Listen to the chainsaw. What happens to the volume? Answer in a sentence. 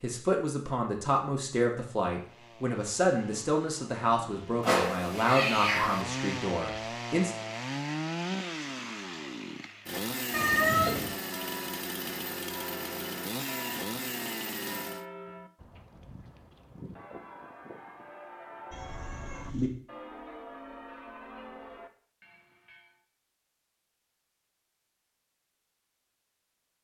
The volume of the chainsaw goes up.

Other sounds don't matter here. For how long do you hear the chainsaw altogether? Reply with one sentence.
The chainsaw can be heard for 13 seconds in total.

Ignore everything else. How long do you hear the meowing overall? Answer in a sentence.
The meowing can be heard for 3 seconds in total.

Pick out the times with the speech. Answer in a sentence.
You can hear the speech from 0.0 to 7.3 s.